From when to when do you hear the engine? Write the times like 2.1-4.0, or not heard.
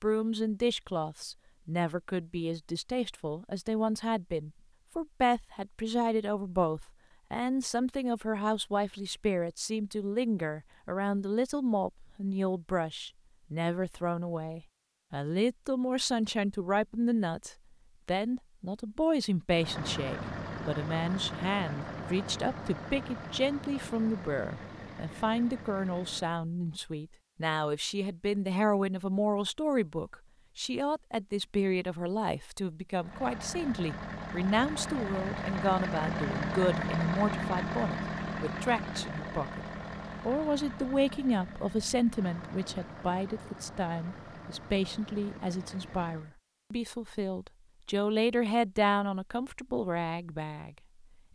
19.5-26.4, 33.0-46.4.